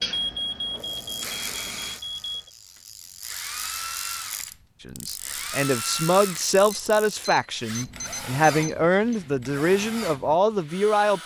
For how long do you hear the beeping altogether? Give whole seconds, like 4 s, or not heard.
5 s.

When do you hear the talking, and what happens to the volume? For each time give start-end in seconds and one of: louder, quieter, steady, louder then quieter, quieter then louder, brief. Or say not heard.
4.8-11.2 steady.